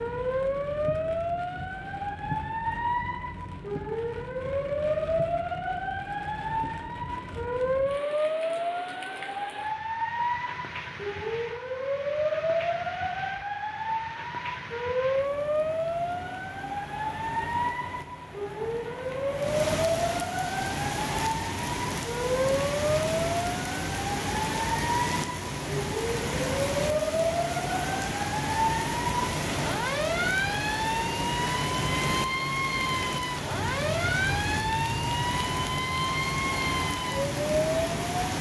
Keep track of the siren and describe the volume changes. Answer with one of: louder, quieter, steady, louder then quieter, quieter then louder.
steady.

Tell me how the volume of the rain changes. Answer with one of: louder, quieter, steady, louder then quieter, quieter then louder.
louder.